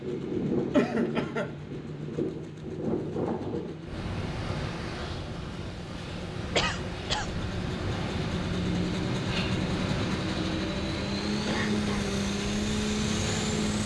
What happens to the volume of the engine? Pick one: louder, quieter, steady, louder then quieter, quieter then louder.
louder.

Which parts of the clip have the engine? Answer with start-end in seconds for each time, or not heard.
0.0-13.8.